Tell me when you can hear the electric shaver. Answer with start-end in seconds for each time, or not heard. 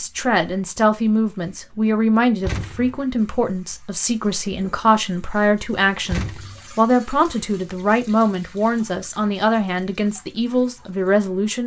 not heard.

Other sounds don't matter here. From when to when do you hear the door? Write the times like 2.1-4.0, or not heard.
2.4-3.0, 6.0-6.7.